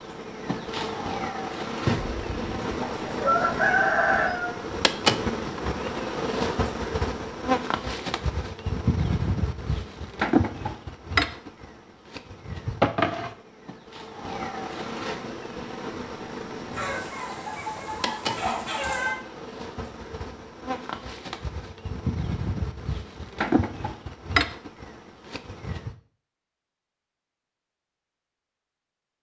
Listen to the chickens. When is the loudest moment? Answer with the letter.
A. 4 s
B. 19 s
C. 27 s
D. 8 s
A.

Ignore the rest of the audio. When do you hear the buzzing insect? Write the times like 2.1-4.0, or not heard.
0.0-25.9.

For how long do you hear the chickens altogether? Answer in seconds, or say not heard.
5 s.